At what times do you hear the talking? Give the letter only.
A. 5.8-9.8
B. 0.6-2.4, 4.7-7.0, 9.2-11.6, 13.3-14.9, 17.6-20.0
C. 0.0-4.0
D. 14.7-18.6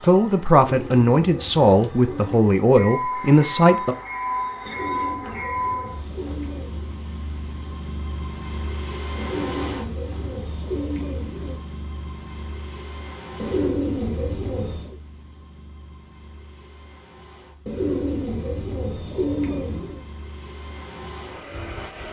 C.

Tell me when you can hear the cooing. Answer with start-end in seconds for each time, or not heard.
0.6-2.4, 4.7-7.0, 9.2-11.6, 13.3-14.9, 17.6-20.0.